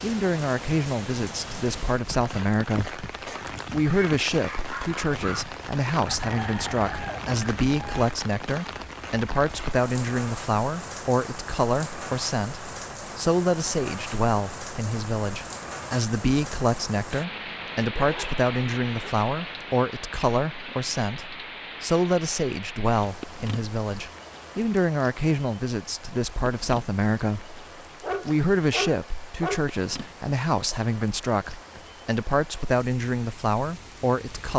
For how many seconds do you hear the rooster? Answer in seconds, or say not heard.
2 s.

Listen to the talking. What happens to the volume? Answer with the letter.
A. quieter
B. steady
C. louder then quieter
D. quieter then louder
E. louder
B.